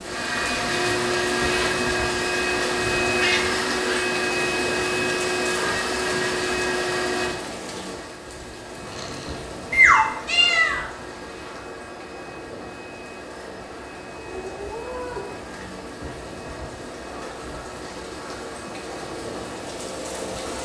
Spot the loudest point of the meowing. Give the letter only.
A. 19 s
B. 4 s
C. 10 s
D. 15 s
C.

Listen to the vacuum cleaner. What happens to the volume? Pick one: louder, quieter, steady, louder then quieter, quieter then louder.
quieter.